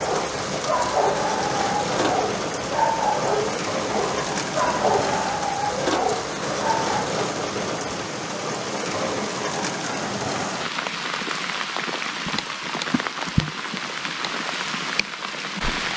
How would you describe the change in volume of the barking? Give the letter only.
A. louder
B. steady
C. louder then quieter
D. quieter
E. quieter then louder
B.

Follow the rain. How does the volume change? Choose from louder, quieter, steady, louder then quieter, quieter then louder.
steady.